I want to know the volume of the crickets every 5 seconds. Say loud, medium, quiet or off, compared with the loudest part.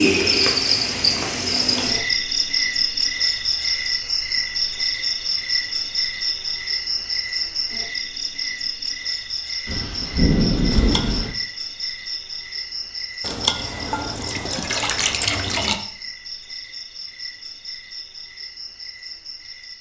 loud, medium, medium, quiet.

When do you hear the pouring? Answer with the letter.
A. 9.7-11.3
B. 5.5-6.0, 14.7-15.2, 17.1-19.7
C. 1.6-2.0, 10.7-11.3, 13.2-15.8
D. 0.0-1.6
C.